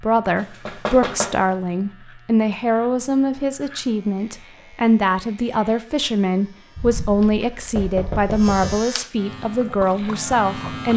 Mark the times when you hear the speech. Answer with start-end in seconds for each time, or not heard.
0.0-10.9.